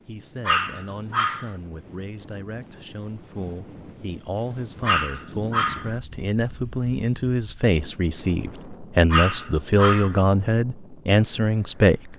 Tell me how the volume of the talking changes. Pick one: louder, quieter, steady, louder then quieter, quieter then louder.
louder.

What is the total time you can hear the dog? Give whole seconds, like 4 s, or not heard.
3 s.